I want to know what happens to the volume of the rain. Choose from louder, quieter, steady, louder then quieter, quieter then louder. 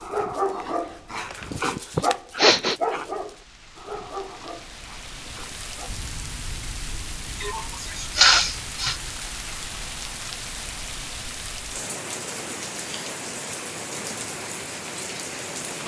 louder.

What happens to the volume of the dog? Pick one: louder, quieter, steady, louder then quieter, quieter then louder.
quieter.